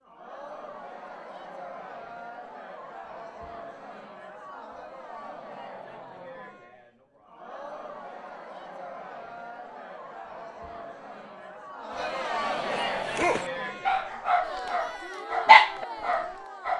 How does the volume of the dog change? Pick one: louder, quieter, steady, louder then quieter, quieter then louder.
louder then quieter.